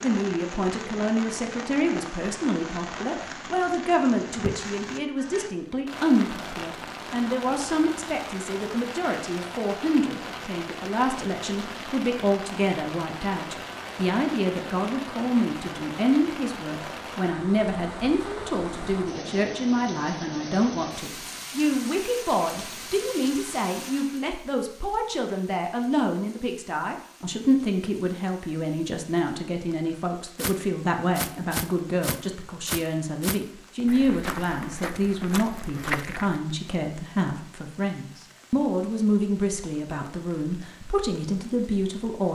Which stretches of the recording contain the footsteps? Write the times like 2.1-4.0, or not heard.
30.4-36.4.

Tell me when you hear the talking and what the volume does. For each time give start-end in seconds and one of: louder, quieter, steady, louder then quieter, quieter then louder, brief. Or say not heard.
0.0-42.3 steady.